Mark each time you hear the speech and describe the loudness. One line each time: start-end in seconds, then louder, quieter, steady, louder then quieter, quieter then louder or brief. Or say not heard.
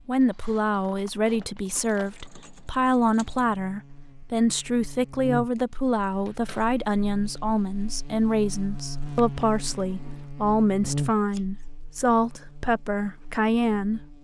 0.1-14.1 steady.